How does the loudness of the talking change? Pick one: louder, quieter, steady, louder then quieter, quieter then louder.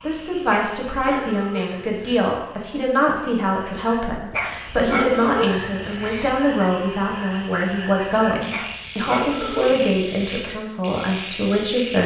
steady.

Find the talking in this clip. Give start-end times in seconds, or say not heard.
0.0-12.0.